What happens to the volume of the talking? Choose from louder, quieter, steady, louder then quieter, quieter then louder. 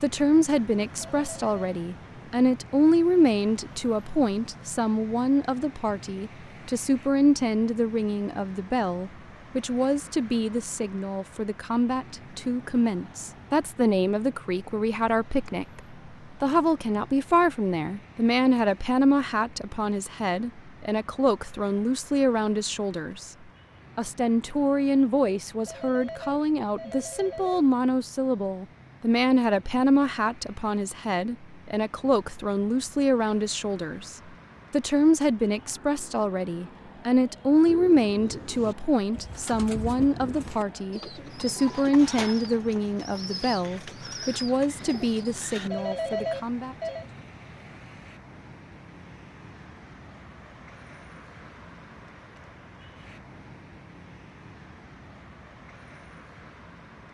steady.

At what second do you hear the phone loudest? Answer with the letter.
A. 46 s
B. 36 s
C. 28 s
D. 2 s
A.